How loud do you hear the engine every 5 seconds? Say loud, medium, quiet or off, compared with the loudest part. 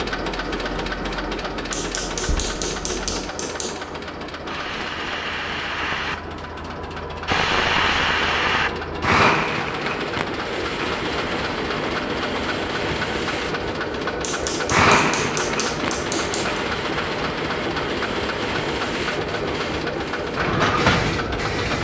loud, medium, loud, loud, loud.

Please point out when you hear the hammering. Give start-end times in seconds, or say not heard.
1.7-3.9, 14.2-16.6.